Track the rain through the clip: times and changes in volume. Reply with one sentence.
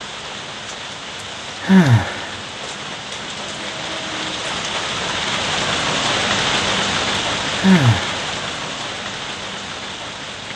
You can hear the rain from 0.0 to 10.5 s, getting louder then quieter.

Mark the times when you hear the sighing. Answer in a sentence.
You can hear the sighing from 1.6 to 2.4 s and from 7.5 to 8.2 s.